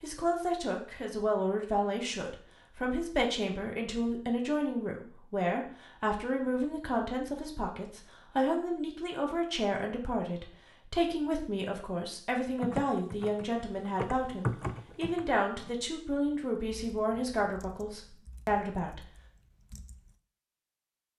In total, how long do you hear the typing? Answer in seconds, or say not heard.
8 s.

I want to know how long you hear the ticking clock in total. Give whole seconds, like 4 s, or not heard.
not heard.